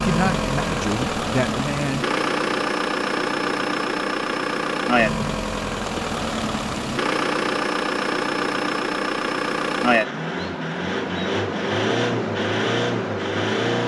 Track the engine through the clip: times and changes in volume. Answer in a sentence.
The engine can be heard from 0.0 to 13.8 s, at a steady volume.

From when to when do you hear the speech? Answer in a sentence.
You can hear the speech from 0.0 to 2.0 s.